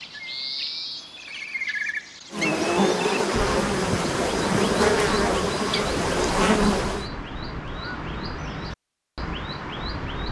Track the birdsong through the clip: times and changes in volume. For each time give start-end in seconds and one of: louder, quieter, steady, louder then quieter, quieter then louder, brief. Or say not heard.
0.0-10.2 steady.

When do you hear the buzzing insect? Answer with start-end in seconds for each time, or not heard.
2.3-7.1.